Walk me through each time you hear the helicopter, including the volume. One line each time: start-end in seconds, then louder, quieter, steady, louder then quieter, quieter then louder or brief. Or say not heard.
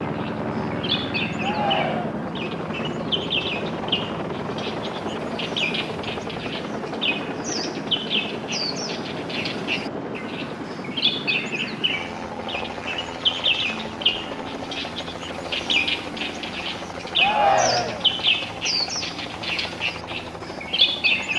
0.0-21.3 quieter.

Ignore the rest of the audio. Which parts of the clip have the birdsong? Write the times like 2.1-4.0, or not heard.
0.0-21.3.